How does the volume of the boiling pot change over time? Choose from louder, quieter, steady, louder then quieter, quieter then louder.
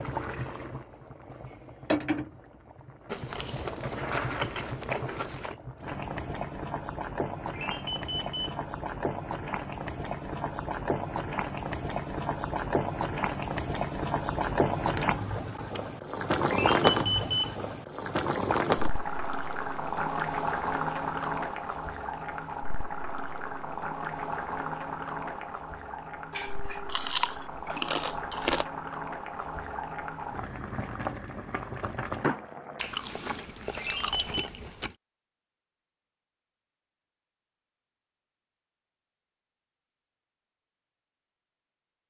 louder then quieter.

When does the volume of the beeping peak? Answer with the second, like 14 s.
17 s.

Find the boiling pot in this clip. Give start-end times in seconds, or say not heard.
0.0-32.9.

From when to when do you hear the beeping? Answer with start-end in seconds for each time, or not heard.
7.5-8.6, 16.5-17.6, 33.8-34.5.